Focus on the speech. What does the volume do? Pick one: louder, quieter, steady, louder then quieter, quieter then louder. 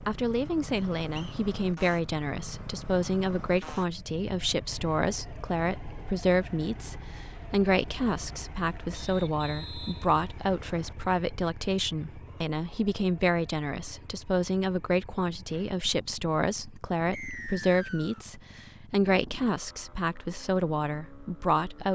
steady.